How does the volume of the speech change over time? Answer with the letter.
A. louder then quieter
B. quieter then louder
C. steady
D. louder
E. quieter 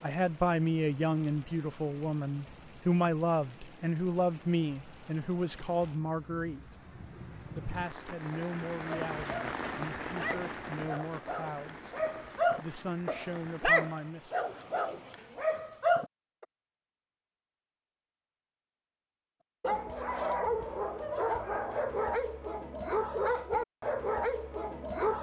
E.